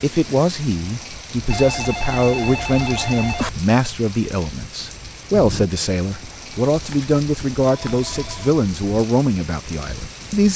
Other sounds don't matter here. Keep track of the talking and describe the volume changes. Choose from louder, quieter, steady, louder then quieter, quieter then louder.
steady.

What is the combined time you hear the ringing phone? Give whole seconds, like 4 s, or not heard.
4 s.